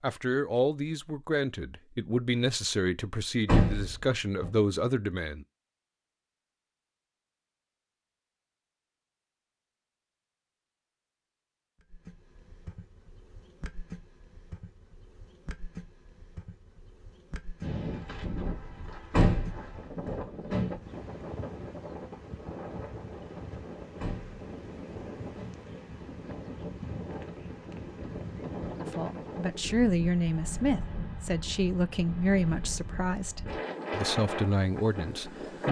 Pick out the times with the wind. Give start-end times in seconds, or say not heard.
17.6-35.6.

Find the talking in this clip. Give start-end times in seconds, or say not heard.
0.0-5.5, 28.9-35.6.